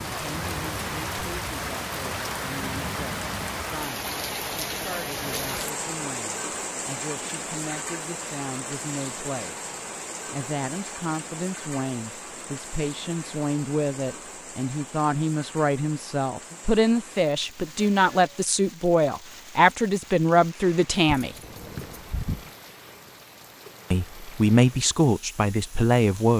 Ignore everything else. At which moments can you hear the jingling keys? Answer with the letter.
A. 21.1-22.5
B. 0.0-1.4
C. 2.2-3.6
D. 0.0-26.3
A.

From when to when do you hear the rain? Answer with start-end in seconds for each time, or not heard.
0.0-26.3.